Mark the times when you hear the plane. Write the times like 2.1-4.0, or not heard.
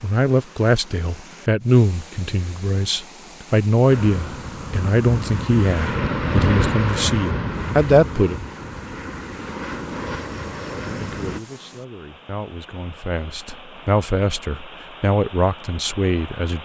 3.9-11.4.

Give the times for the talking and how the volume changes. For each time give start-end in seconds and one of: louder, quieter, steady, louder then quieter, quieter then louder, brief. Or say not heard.
0.0-8.3 quieter then louder
10.9-16.6 louder.